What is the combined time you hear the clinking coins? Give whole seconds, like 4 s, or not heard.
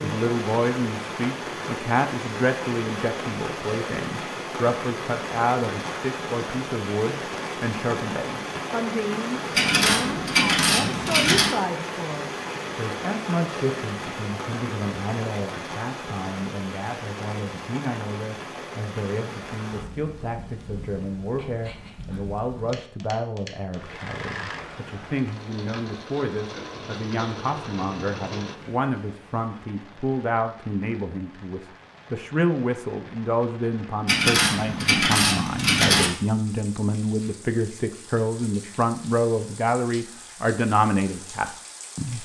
4 s.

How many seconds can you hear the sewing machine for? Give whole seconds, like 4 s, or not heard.
5 s.